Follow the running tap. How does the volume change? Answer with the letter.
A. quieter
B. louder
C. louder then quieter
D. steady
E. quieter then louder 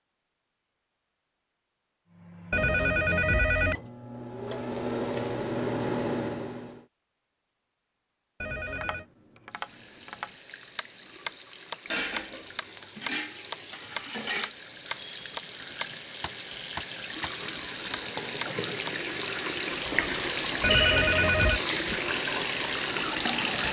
B.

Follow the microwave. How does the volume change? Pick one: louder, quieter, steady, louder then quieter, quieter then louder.
louder.